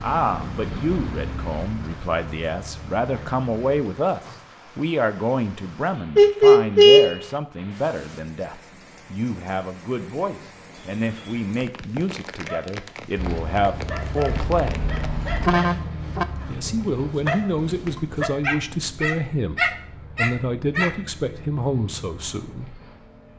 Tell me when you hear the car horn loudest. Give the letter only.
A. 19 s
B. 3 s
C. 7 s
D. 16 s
C.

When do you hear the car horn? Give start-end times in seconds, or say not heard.
6.2-7.2, 14.2-16.2.